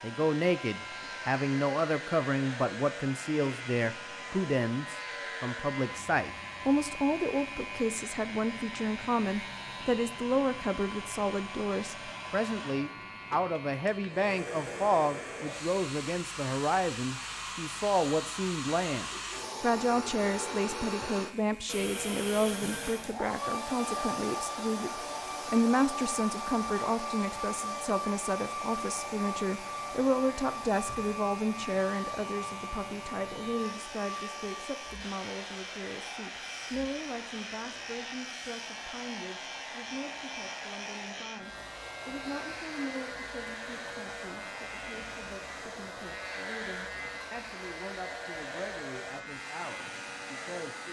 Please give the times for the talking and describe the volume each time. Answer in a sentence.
The talking can be heard from 0.0 to 50.8 s, getting quieter.